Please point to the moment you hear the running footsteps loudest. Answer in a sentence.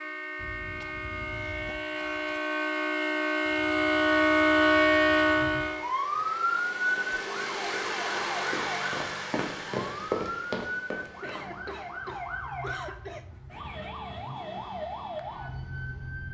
The loudest moment of the running footsteps is at 10 seconds.